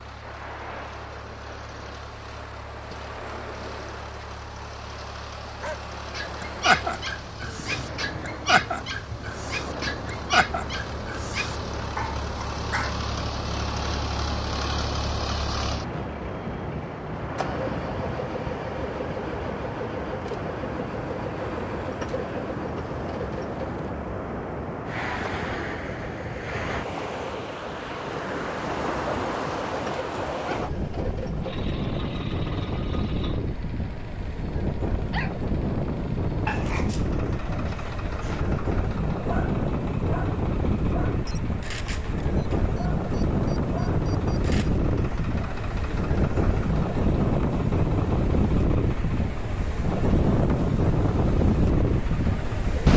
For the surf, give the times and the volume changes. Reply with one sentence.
You can hear the surf from 0.0 to 52.9 s, getting louder.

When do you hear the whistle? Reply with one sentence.
You can't hear the whistle here.